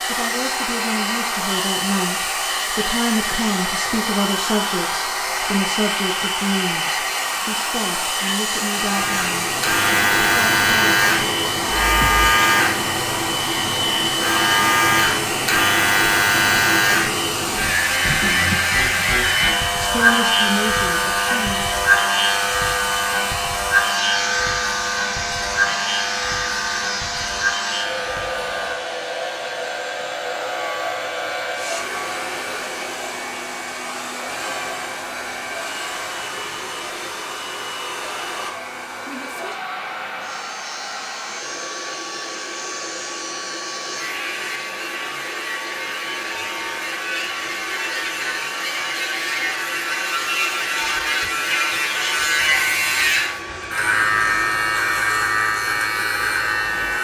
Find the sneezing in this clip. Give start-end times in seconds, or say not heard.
not heard.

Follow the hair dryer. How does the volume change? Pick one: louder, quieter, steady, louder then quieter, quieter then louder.
quieter.